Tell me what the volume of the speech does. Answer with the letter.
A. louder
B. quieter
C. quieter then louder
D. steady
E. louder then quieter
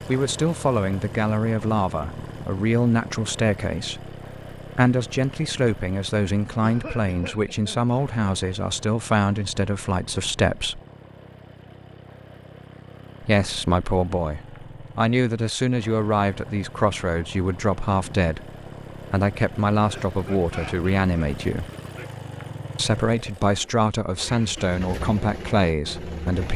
D.